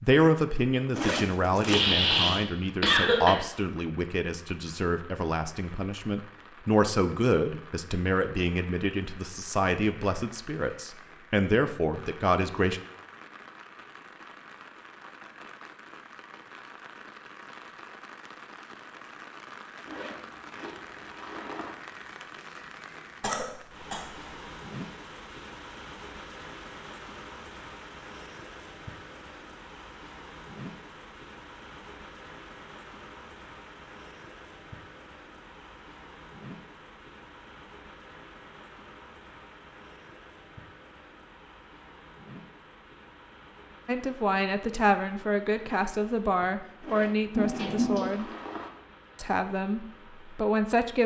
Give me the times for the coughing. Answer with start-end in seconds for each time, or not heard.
1.6-3.4, 23.2-24.1, 47.4-48.1.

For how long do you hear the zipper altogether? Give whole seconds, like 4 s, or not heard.
5 s.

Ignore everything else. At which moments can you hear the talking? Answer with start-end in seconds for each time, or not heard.
0.0-12.8, 43.9-48.2, 49.1-51.0.